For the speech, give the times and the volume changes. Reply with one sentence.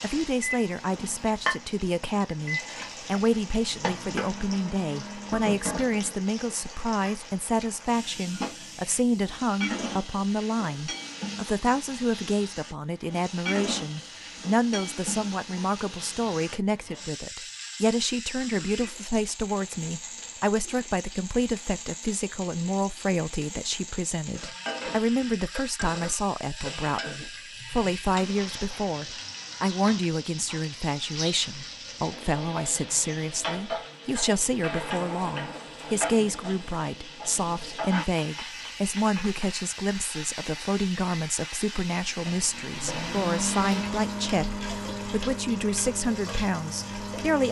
You can hear the speech from 0.0 to 47.4 s, at a steady volume.